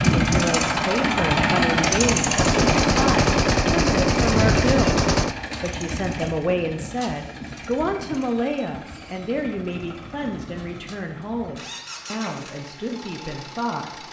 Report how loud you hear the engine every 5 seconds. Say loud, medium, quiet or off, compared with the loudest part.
loud, quiet, quiet.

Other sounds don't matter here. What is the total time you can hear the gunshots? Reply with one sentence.
You can hear the gunshots for 3 seconds altogether.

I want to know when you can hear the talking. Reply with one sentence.
The talking can be heard from 0.2 to 5.0 s and from 5.6 to 14.0 s.